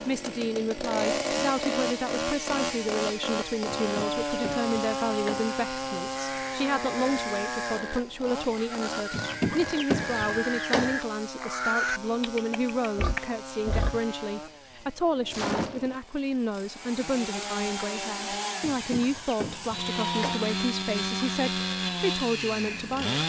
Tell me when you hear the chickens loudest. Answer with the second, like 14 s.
10 s.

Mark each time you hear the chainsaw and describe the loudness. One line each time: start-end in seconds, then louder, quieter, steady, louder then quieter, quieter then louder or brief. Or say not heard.
0.0-23.2 quieter then louder.